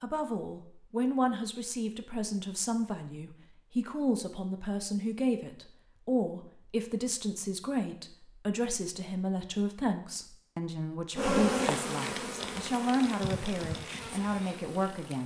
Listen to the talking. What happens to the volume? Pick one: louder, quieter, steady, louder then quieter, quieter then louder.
steady.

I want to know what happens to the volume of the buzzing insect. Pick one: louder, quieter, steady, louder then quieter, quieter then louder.
quieter.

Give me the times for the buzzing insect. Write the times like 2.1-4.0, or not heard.
11.2-15.2.